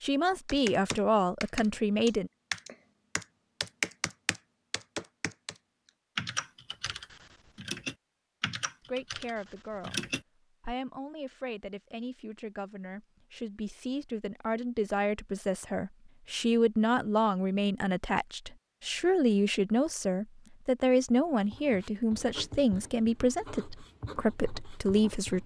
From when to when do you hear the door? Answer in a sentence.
You can't hear the door here.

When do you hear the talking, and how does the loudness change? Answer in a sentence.
The talking can be heard briefly from 0.0 to 2.3 s; briefly from 8.8 to 10.1 s; and from 10.7 to 25.4 s, getting louder.